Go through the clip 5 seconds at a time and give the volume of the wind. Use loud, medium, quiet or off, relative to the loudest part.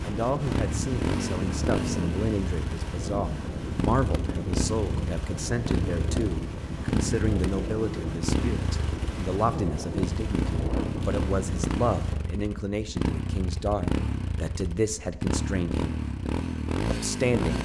loud, loud, loud, off.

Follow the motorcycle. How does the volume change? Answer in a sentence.
The loudness of the motorcycle stays about the same.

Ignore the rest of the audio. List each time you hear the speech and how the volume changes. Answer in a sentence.
The speech can be heard from 0.0 to 16.0 s, at a steady volume; and briefly from 16.9 to 17.6 s.